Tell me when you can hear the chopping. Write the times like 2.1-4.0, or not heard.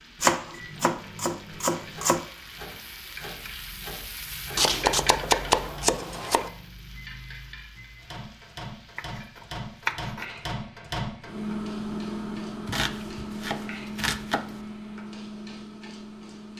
0.2-2.2, 4.5-6.5, 8.9-10.2, 12.7-14.7.